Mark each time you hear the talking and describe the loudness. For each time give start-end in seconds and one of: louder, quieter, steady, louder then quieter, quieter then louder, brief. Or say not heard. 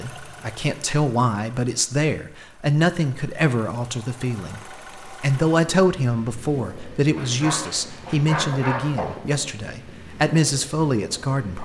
0.0-11.6 steady.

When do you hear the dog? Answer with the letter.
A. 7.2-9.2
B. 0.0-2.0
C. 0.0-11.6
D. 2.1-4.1
A.